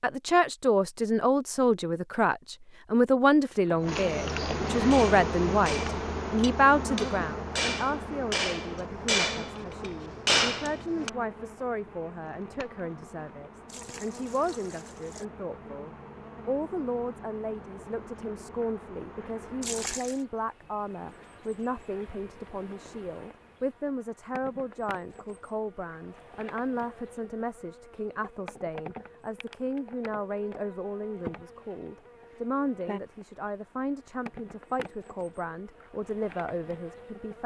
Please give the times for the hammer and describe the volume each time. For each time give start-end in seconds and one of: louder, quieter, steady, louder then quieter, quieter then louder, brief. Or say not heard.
4.9-11.1 louder.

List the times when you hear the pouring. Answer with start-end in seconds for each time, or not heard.
13.7-15.2, 19.6-20.2.